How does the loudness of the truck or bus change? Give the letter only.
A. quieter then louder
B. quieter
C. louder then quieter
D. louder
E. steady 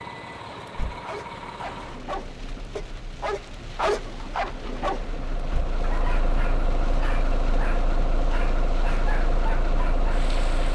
A.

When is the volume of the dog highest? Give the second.
4 s.